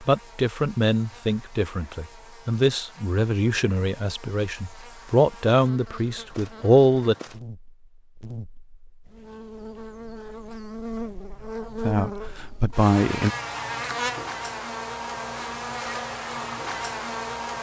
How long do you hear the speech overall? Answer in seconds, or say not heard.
9 s.